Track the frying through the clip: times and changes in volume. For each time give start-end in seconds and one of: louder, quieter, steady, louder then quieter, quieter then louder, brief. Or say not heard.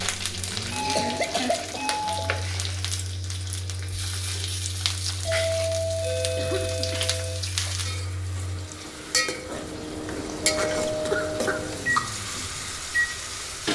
0.0-13.7 steady.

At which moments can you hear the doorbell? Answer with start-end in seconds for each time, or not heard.
0.7-2.5, 5.2-7.4, 10.1-11.5.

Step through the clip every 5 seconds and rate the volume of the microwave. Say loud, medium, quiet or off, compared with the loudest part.
medium, medium, loud.